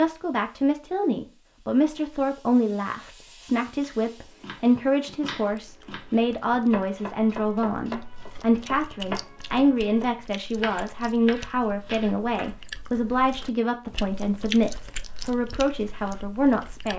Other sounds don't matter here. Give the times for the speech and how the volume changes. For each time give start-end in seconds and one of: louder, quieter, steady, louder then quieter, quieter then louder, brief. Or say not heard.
0.0-16.9 steady.